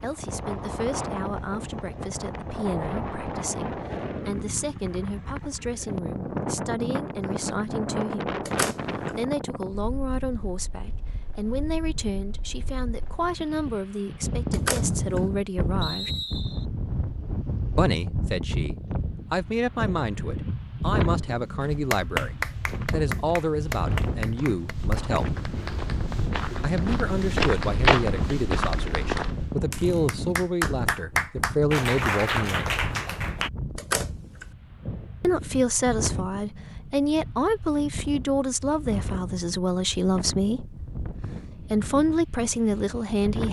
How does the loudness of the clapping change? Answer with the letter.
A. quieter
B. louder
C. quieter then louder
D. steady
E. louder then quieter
C.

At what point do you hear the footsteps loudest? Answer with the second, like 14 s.
28 s.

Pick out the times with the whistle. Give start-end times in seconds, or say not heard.
15.8-16.6.